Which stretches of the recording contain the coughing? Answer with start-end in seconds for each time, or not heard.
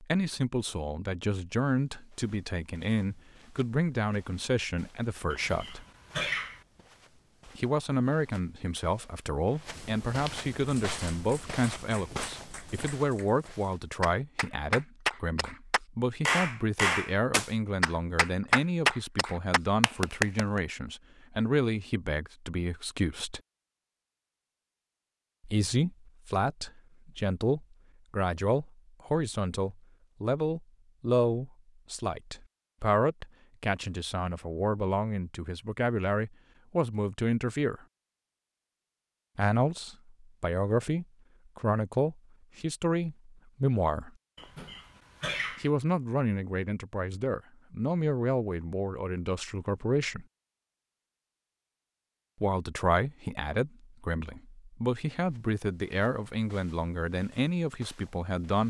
5.3-6.6, 44.4-45.7.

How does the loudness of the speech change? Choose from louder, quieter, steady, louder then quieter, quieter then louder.
steady.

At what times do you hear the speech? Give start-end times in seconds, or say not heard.
0.0-5.8, 7.5-23.4, 25.4-37.8, 39.4-44.1, 45.6-50.2, 52.4-58.6.